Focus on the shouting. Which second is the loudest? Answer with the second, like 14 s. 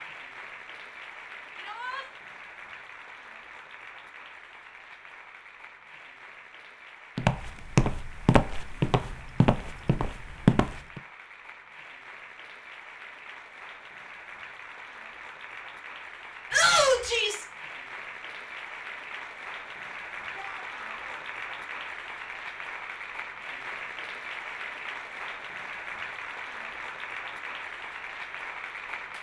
17 s.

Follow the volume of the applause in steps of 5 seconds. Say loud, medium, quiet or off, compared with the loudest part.
medium, medium, medium, loud, loud, loud.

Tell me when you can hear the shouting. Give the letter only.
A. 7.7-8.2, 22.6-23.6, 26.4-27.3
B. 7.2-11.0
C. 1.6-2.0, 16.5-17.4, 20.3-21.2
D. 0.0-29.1
C.